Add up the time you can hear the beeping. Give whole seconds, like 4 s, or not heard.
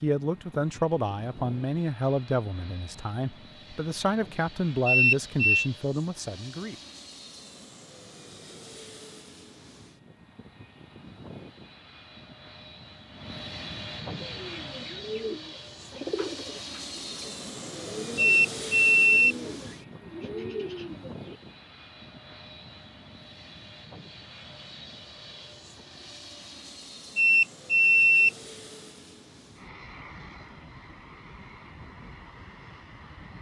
3 s.